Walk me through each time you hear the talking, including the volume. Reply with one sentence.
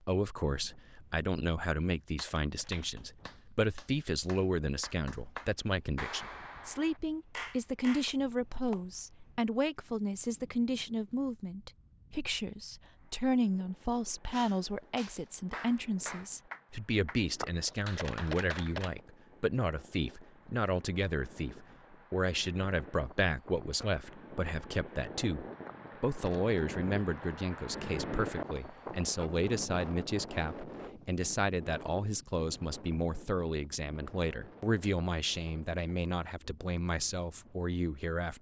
You can hear the talking from 0.1 to 38.3 s, at a steady volume.